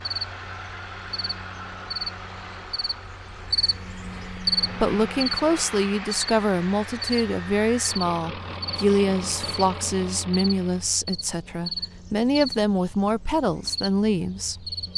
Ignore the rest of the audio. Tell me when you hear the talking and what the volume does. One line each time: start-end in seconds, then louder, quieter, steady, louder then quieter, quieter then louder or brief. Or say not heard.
4.3-14.7 steady.